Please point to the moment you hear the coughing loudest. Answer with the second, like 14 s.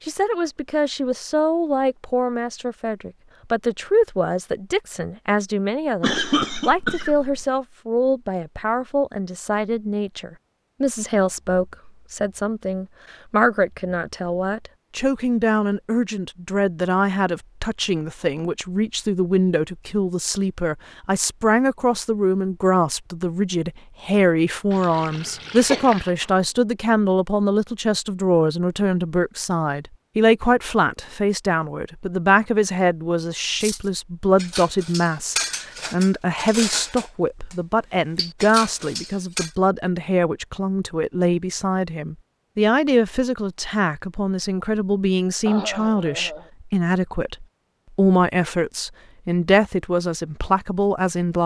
6 s.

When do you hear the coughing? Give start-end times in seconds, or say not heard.
6.0-7.5, 25.2-26.3, 45.5-46.5.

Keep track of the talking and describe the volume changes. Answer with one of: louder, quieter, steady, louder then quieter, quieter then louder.
steady.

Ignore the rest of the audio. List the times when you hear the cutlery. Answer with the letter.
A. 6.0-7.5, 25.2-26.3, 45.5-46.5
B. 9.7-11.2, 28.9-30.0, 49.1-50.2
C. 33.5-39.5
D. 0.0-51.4
C.